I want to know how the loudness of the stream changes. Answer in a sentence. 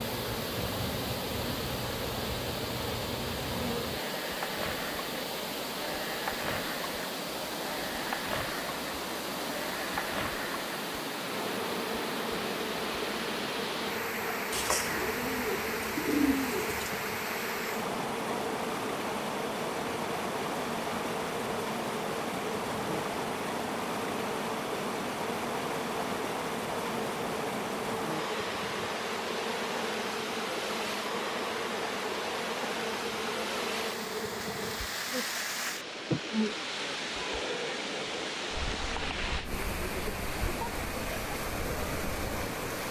The loudness of the stream stays about the same.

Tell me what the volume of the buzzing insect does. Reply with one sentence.
The loudness of the buzzing insect stays about the same.